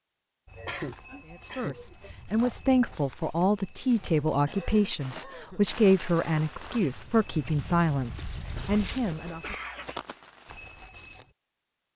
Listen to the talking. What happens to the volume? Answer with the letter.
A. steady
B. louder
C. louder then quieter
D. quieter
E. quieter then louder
A.